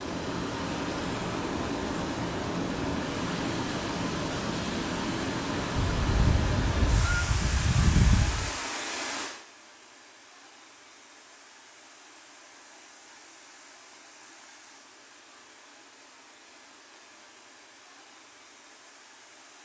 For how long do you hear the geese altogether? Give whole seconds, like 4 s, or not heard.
3 s.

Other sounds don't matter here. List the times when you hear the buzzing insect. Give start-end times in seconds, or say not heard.
not heard.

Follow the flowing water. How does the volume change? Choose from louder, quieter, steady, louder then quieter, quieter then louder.
quieter.